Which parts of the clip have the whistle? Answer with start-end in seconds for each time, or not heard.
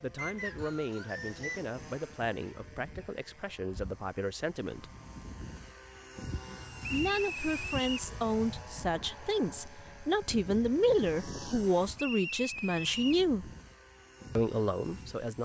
0.1-1.6, 6.8-8.1, 11.9-13.2.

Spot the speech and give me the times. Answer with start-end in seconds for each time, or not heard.
0.0-4.9, 6.9-13.5, 14.3-15.4.